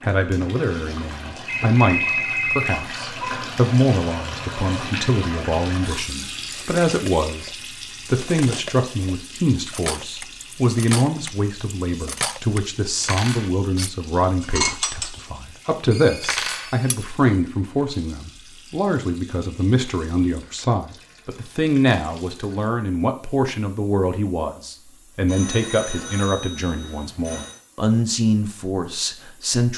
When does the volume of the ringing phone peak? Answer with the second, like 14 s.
2 s.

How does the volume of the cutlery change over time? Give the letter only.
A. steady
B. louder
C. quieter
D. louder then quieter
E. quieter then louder
B.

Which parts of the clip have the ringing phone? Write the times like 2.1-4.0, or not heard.
1.4-2.9, 15.9-17.0, 25.2-27.6.